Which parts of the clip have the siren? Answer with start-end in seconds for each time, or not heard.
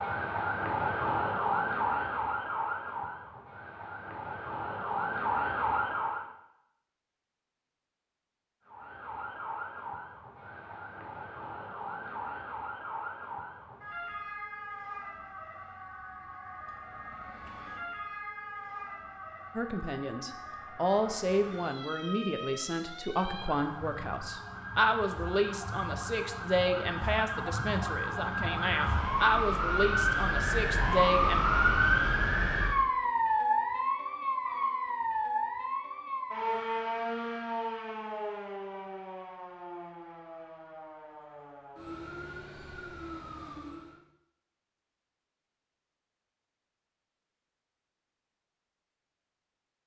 0.0-6.2, 8.7-44.0.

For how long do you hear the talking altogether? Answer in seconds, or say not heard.
12 s.